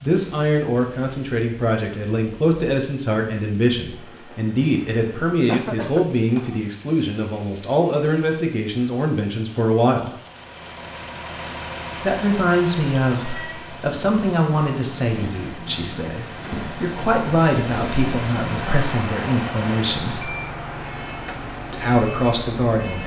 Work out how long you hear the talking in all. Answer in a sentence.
The talking can be heard for 20 seconds in total.